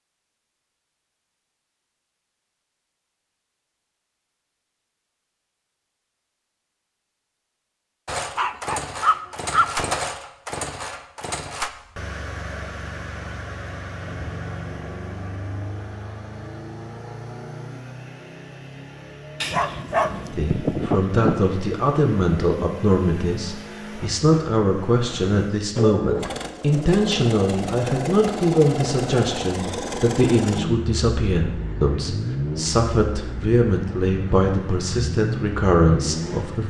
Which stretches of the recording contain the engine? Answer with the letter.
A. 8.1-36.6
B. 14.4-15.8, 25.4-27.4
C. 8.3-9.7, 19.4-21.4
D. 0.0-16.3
A.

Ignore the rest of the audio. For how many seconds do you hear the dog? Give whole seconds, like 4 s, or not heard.
3 s.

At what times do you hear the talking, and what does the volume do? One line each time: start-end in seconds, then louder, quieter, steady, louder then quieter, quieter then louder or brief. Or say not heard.
20.3-36.6 steady.